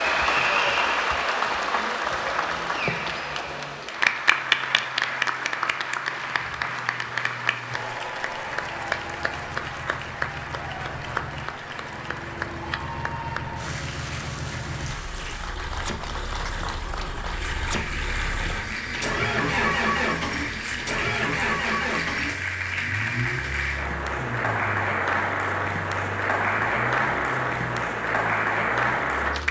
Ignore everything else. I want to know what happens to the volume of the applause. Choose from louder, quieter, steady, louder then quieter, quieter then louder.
quieter then louder.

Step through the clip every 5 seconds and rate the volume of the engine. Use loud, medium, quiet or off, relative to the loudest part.
quiet, quiet, medium, loud, loud, medium.